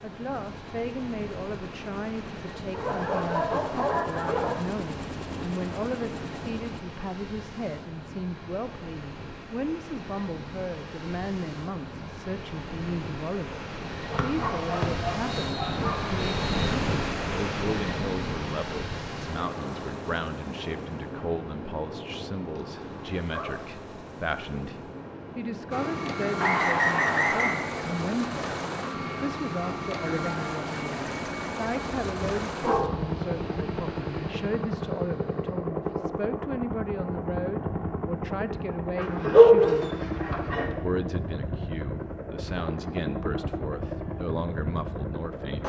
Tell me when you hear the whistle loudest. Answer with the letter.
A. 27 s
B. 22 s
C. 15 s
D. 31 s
A.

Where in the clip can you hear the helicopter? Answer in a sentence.
The helicopter can be heard from 0.0 to 6.8 s and from 25.7 to 45.6 s.